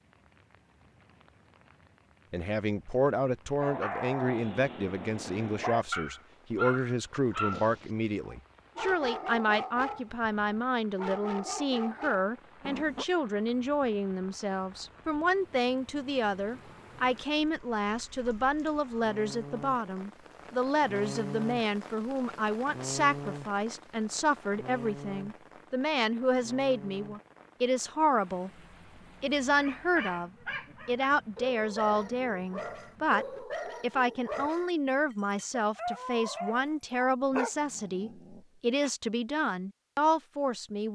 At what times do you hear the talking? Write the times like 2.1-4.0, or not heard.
2.3-28.5, 29.2-40.9.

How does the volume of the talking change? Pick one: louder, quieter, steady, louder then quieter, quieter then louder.
steady.